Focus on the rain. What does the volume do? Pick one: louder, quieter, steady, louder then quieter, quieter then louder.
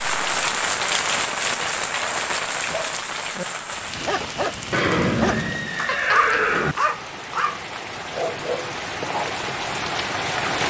quieter then louder.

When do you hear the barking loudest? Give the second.
6 s.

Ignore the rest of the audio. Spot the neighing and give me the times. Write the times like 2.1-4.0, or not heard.
4.7-6.8.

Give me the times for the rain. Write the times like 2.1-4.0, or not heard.
0.0-10.6.